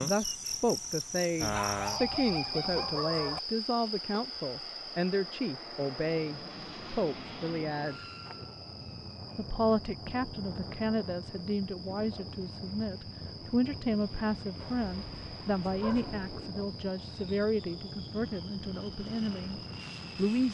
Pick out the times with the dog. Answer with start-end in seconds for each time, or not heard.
1.4-3.4, 14.6-16.3.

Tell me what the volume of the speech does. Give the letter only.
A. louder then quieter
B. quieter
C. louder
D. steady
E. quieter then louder
D.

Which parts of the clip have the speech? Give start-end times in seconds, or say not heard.
0.0-8.0, 9.3-20.4.